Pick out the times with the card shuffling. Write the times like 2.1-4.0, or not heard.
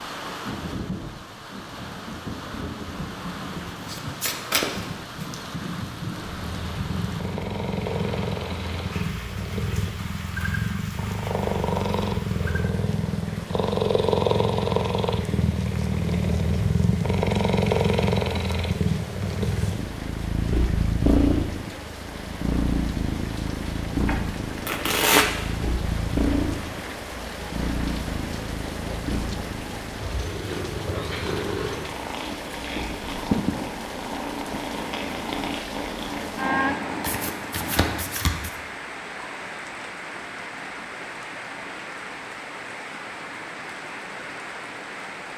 3.9-5.3, 24.1-25.2, 37.0-38.5.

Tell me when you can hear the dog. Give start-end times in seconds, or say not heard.
not heard.